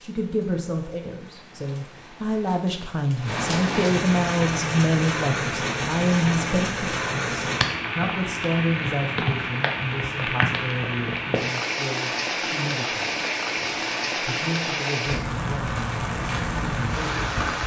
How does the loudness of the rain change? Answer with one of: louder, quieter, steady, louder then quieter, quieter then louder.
louder.